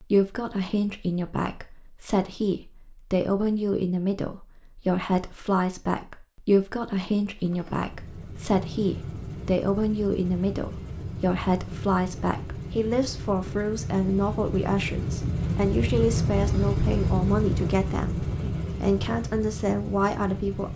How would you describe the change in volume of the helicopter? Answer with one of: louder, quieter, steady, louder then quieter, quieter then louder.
louder then quieter.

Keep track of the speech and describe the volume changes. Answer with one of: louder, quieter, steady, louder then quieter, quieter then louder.
steady.